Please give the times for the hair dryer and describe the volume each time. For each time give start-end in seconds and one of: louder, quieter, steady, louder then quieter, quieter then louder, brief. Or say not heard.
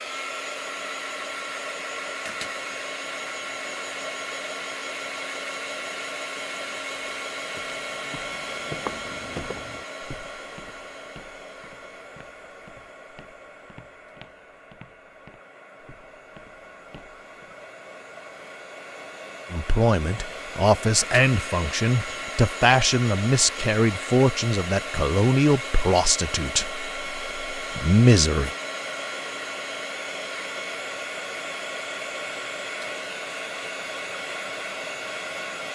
0.0-35.7 quieter then louder.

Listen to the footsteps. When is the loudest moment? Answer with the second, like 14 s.
9 s.